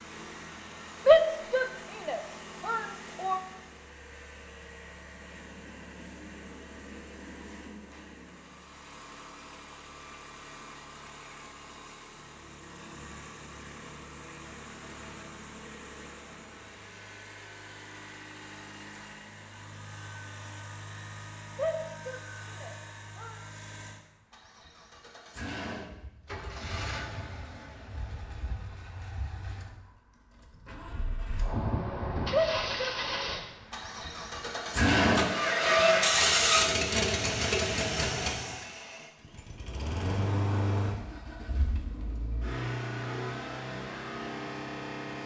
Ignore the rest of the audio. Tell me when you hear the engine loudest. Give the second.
36 s.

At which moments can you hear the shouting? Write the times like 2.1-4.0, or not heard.
1.1-3.4, 21.6-23.4, 32.3-33.4.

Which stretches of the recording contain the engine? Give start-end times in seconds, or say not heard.
0.0-45.2.